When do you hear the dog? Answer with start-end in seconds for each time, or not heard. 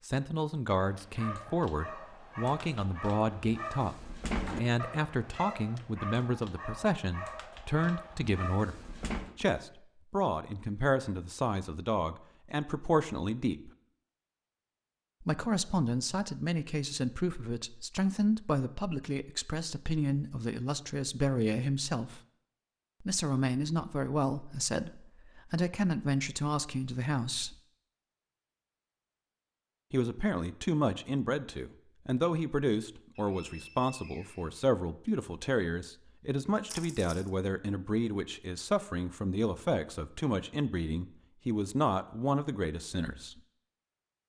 0.8-9.3.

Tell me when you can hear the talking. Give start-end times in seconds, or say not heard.
0.1-8.8, 9.3-13.7, 15.2-22.2, 23.0-27.6, 29.9-43.4.